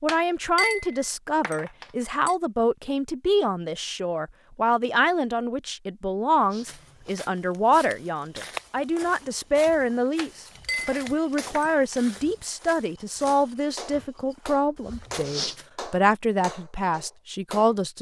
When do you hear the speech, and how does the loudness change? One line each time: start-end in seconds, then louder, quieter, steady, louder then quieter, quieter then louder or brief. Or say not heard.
0.0-17.9 steady.